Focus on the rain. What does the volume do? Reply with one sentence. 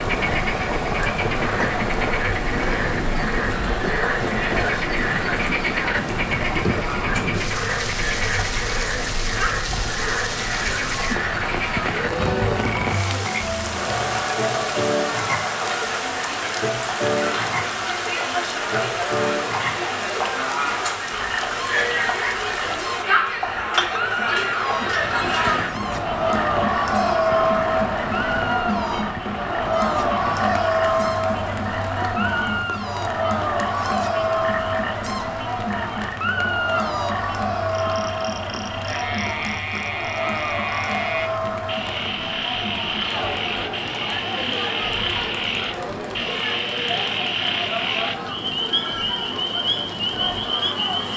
The volume of the rain goes down.